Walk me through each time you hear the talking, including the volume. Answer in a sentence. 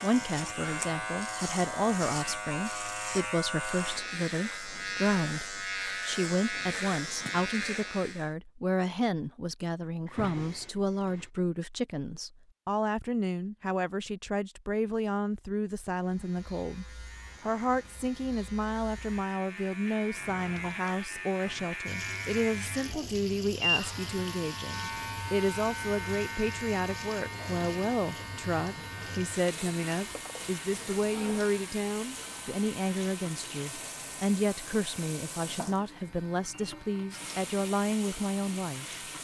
The talking can be heard from 0.0 to 38.9 s, at a steady volume.